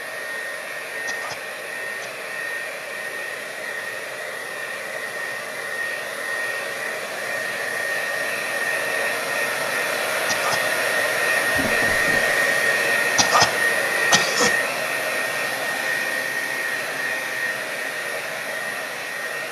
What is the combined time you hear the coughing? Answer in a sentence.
You can hear the coughing for 3 seconds altogether.